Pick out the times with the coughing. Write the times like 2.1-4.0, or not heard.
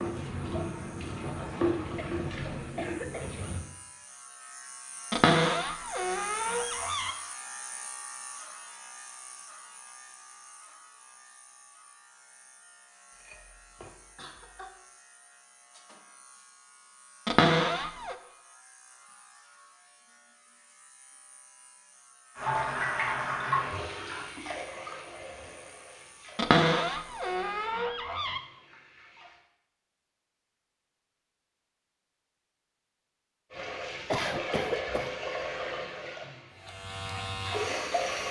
1.9-3.4, 13.1-14.7, 34.0-35.1.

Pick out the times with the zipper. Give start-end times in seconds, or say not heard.
not heard.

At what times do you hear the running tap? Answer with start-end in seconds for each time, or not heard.
0.0-3.6, 22.4-29.4, 33.5-38.2.